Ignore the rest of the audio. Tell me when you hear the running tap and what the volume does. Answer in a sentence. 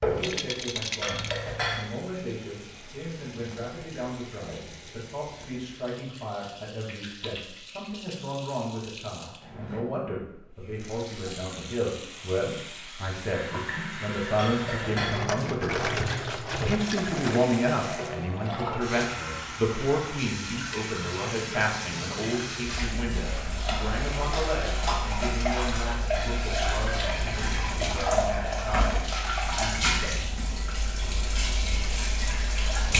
The running tap can be heard from 0.0 to 32.9 s, getting louder.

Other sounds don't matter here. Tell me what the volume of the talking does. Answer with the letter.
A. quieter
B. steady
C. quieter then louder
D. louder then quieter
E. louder
D.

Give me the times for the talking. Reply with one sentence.
You can hear the talking from 0.0 to 15.9 s and from 16.6 to 30.1 s.